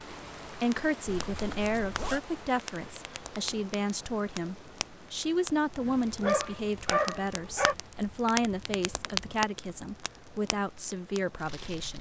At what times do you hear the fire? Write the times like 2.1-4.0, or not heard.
0.1-11.9.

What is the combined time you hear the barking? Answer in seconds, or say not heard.
2 s.